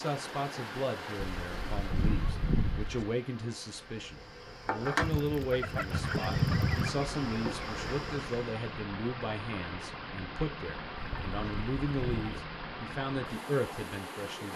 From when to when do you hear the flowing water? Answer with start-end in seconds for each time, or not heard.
0.0-14.5.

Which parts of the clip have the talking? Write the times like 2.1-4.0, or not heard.
0.0-14.5.